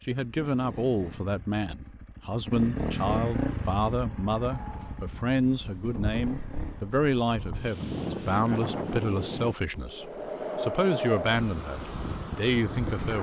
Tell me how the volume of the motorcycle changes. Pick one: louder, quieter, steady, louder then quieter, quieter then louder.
louder then quieter.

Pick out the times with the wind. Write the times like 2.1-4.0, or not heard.
3.5-13.1.